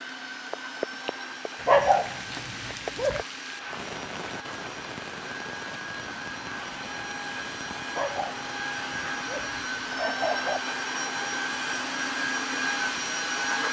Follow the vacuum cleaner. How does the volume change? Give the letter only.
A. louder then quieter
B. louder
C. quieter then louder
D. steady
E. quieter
B.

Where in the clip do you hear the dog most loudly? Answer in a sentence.
The volume of the dog peaks at 2 seconds.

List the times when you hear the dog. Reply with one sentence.
The dog can be heard from 1.6 to 3.2 s and from 7.8 to 10.7 s.